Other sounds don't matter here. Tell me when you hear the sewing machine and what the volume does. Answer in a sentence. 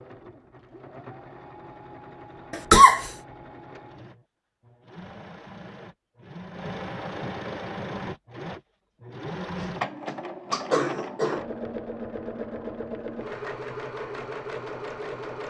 You can hear the sewing machine from 0.0 to 15.4 s, getting louder.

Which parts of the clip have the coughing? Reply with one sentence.
You can hear the coughing from 2.5 to 3.1 s and from 9.6 to 11.4 s.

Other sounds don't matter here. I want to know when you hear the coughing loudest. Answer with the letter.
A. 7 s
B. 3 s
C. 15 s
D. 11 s
B.